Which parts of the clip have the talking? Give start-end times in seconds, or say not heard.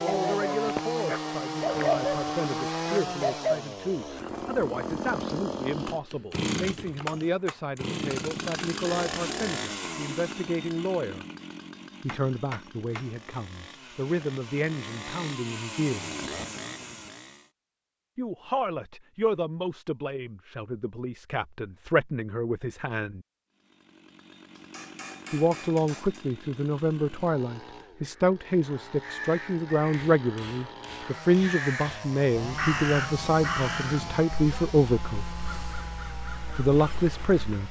0.0-11.2, 12.0-16.1, 18.1-23.2, 25.3-35.2, 36.5-37.6.